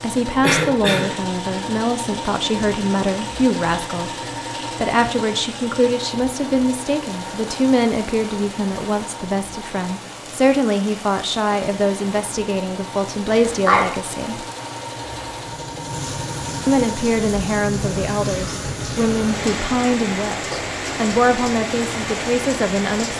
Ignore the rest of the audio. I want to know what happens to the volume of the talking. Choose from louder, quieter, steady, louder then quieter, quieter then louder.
steady.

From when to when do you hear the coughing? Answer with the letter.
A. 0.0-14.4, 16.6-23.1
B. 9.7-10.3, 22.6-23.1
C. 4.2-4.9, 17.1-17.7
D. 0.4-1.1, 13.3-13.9
D.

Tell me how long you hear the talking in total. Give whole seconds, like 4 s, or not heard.
21 s.